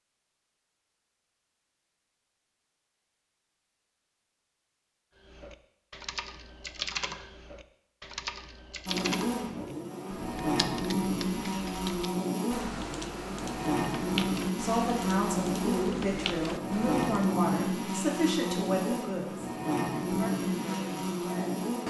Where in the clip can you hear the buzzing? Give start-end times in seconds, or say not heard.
8.8-21.8.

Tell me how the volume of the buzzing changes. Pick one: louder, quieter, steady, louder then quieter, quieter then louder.
steady.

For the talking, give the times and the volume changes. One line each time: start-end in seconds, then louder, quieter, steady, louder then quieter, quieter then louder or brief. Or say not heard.
14.6-21.8 quieter.